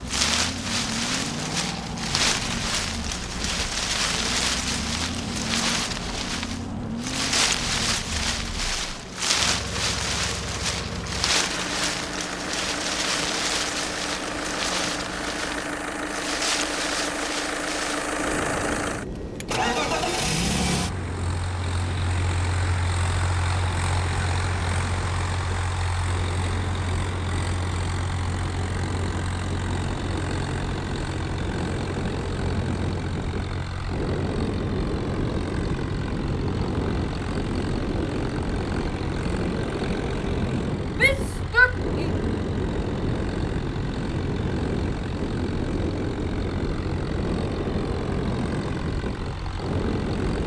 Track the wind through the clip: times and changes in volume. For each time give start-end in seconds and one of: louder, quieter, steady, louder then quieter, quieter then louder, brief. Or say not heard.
0.0-50.4 quieter then louder.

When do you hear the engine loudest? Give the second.
20 s.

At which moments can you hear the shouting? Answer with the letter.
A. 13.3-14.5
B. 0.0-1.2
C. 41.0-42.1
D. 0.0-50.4
C.